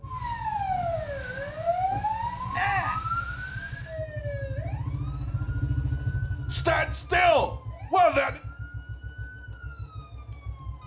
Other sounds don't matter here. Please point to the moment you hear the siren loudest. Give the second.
2 s.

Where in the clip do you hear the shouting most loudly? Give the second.
7 s.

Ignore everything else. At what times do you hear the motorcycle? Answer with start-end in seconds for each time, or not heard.
0.0-10.8.